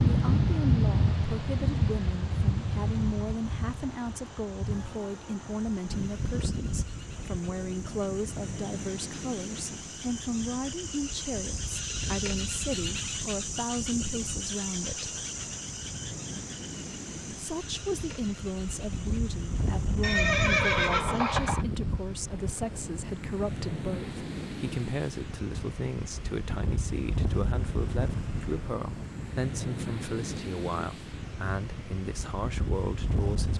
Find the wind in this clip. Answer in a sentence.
You can hear the wind from 0.0 to 33.5 s.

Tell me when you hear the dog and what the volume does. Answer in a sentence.
The dog can't be heard in this clip.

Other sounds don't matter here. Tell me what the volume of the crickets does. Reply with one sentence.
The loudness of the crickets goes up, then down.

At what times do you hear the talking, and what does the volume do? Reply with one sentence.
The talking can be heard from 0.1 to 15.2 s, at a steady volume; and from 17.3 to 33.5 s, at a steady volume.